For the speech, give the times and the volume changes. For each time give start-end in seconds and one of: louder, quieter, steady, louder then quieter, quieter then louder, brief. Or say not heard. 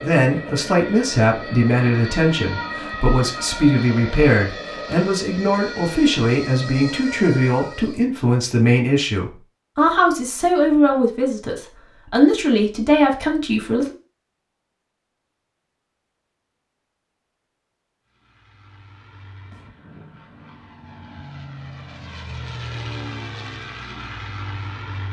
0.0-13.9 steady.